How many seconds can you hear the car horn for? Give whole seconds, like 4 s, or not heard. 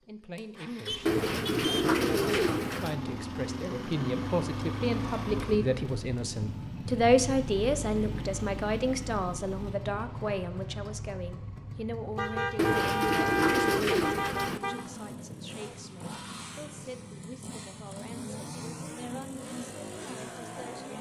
4 s.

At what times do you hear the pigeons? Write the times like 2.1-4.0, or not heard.
1.1-3.0, 12.6-14.6.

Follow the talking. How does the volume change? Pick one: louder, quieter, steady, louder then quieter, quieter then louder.
louder then quieter.